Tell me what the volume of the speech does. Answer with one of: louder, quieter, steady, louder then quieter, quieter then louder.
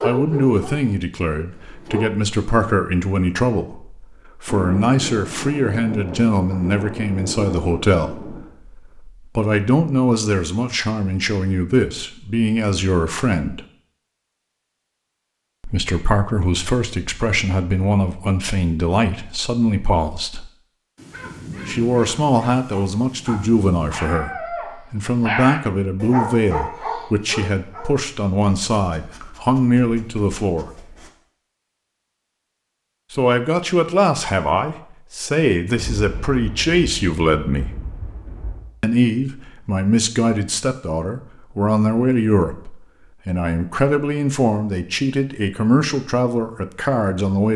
steady.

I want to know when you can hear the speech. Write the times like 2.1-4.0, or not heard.
0.0-13.7, 15.6-20.5, 21.6-30.7, 33.1-37.7, 38.8-47.5.